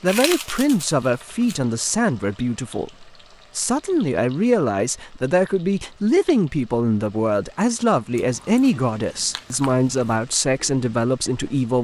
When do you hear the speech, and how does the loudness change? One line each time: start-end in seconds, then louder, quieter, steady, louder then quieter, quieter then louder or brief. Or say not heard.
0.0-11.7 steady.